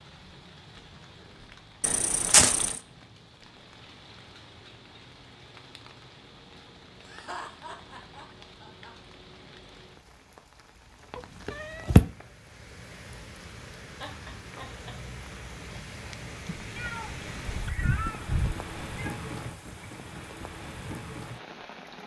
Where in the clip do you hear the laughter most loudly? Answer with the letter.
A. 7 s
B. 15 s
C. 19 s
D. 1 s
A.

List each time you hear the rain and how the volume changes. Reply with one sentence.
The rain can be heard from 0.0 to 22.0 s, getting louder.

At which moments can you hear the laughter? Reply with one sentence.
The laughter can be heard from 7.0 to 8.9 s and from 14.0 to 14.9 s.